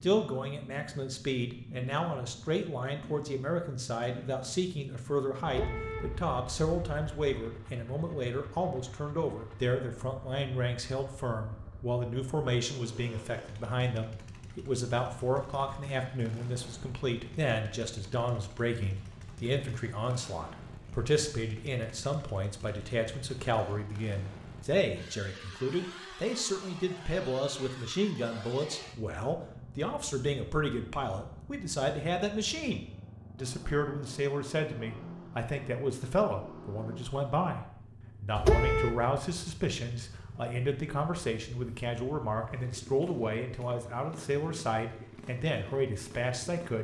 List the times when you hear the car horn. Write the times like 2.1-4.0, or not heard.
5.5-7.3, 38.4-39.0.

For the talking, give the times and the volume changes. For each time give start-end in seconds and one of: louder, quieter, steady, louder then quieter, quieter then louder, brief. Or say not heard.
0.0-46.7 steady.